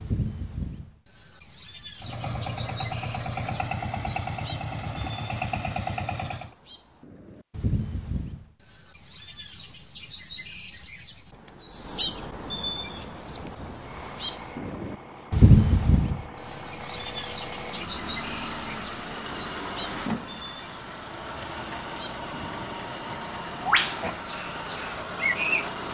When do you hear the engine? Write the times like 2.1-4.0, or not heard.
2.0-6.5, 12.9-25.8.